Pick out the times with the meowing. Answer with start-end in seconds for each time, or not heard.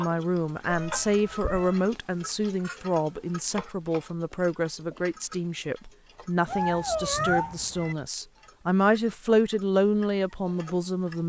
0.7-1.8, 6.5-8.0.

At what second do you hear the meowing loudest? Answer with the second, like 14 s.
7 s.